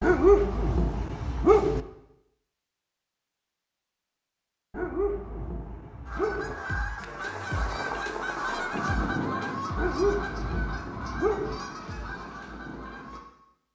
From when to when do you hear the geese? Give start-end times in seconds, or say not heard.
6.0-13.2.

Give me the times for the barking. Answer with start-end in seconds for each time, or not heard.
0.0-1.8, 4.7-6.5, 9.8-11.6.